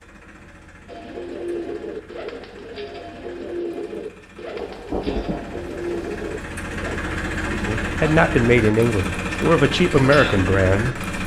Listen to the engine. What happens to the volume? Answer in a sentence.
The volume of the engine goes up.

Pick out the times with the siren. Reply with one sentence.
The siren can't be heard in this clip.